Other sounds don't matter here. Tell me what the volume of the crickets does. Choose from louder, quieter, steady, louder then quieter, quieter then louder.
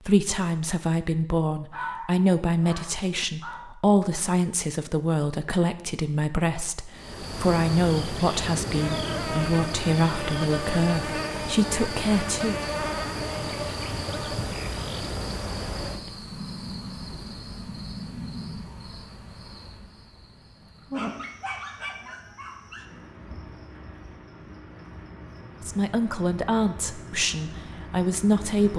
quieter.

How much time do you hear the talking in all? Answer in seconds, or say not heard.
16 s.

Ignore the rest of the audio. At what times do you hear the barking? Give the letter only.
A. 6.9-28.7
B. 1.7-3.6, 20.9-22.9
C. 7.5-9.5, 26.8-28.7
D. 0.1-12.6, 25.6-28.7
B.